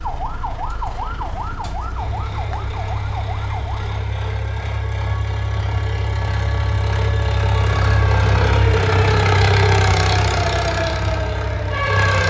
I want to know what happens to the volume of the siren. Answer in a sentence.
The loudness of the siren goes down, then up.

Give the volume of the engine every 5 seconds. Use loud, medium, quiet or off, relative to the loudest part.
medium, loud, loud.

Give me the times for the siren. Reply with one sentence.
You can hear the siren from 0.0 to 12.2 s.